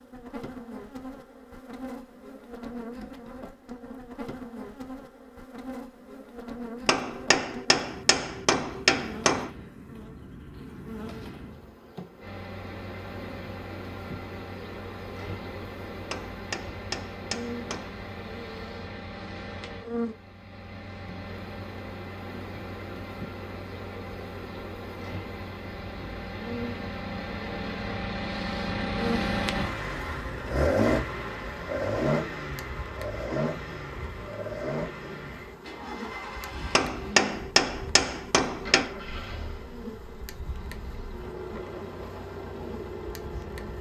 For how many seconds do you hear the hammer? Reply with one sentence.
The hammer can be heard for 7 seconds in total.